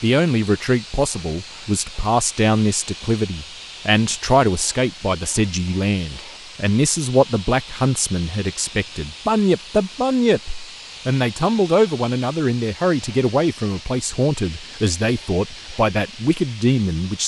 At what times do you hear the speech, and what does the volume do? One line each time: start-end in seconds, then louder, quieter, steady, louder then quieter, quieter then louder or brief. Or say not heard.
0.0-17.2 steady.